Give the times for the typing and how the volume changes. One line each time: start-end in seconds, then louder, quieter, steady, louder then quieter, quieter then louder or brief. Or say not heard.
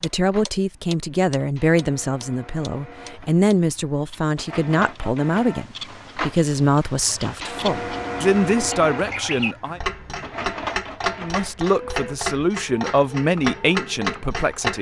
not heard.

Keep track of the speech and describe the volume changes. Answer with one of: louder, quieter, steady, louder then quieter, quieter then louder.
steady.